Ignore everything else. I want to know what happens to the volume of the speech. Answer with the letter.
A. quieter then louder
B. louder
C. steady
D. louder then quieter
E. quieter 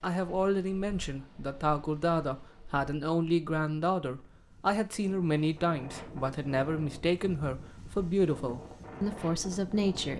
C.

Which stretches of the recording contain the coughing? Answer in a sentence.
You can't hear the coughing here.